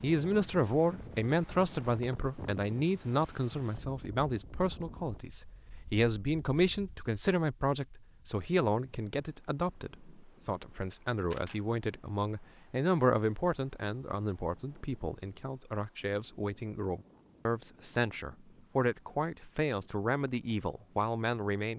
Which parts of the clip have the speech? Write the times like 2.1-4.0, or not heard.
0.0-21.7.